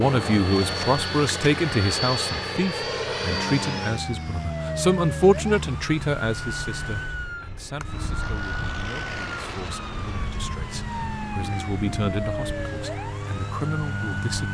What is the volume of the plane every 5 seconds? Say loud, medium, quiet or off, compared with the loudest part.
loud, medium, medium.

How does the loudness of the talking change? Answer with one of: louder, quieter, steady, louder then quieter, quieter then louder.
quieter then louder.